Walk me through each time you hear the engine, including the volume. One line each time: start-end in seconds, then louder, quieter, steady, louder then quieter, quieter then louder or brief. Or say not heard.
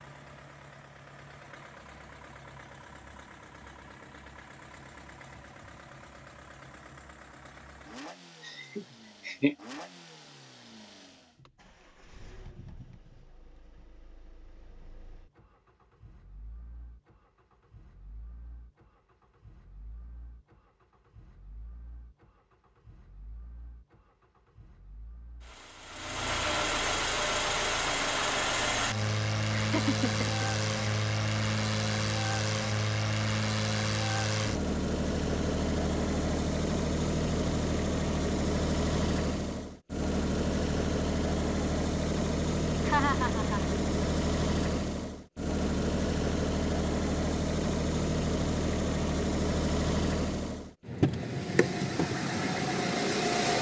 0.0-53.5 quieter then louder.